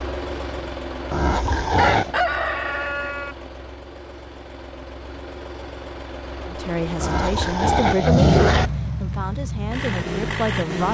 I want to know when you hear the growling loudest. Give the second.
8 s.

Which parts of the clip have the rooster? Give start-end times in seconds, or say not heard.
1.8-3.4.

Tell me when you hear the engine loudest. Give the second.
10 s.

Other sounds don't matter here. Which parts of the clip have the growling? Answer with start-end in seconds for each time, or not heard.
1.1-2.1, 7.0-8.7.